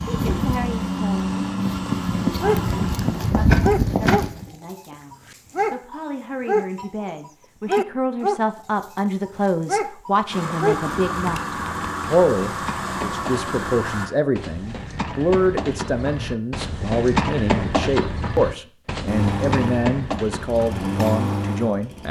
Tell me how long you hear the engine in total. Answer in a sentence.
The engine can be heard for 10 seconds in total.